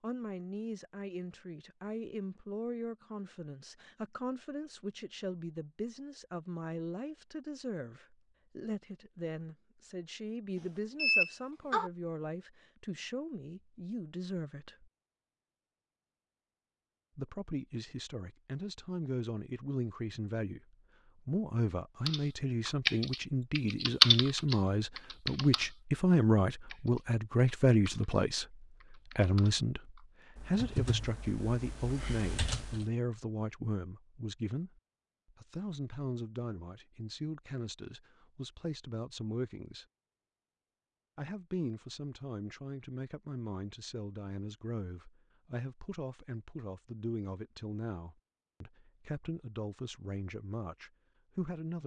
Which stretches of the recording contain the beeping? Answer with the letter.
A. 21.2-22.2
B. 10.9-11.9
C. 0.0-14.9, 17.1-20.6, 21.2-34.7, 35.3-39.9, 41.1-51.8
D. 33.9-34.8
B.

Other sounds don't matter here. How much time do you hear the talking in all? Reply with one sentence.
You can hear the talking for 47 seconds altogether.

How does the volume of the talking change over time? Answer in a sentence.
The volume of the talking goes up, then down.